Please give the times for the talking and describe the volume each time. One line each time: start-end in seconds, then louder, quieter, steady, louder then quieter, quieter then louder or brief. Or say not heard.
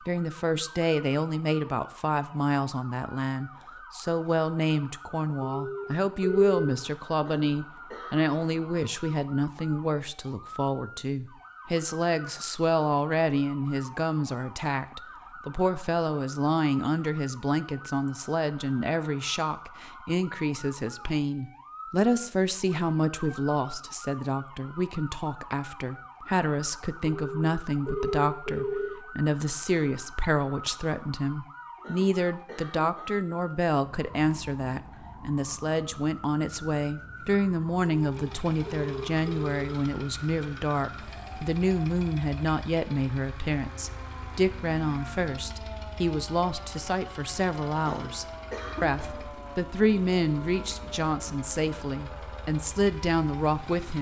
0.1-53.9 steady.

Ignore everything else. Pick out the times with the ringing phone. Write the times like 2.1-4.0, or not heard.
5.4-6.7, 27.1-28.9, 38.0-39.6.